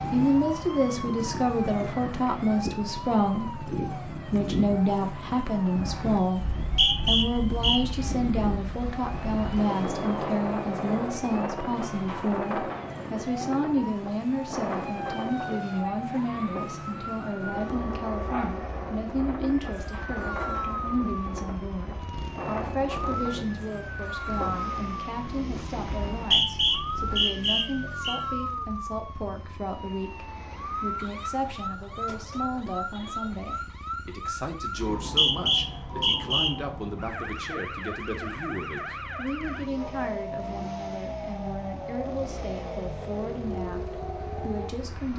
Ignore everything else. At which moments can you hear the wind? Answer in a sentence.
The wind can be heard from 0.0 to 27.2 s.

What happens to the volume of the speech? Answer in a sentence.
The loudness of the speech goes down.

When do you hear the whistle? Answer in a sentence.
The whistle can be heard from 6.3 to 8.0 s, from 26.1 to 28.2 s and from 34.8 to 36.5 s.